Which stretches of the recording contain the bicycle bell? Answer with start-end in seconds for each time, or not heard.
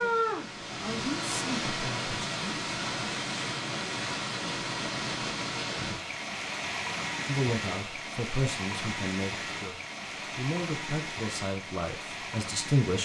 not heard.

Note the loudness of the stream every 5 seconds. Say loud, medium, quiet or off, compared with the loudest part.
loud, loud, medium.